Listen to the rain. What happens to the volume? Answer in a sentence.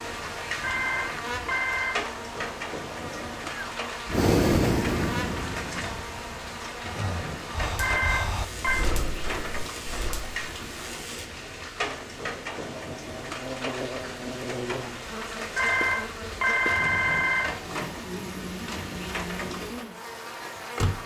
The loudness of the rain stays about the same.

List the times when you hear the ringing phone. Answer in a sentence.
The ringing phone can be heard from 0.6 to 1.9 s, from 7.8 to 8.8 s and from 15.6 to 17.5 s.